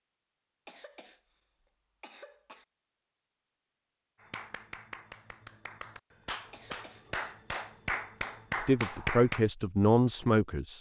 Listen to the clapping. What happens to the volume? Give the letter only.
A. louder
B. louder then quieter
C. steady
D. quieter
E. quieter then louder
A.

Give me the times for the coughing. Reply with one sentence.
The coughing can be heard from 0.7 to 2.6 s and from 6.5 to 7.2 s.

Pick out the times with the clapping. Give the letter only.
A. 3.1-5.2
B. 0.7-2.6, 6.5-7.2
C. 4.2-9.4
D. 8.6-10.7
C.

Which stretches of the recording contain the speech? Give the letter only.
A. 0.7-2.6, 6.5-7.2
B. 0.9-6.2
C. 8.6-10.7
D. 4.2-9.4
C.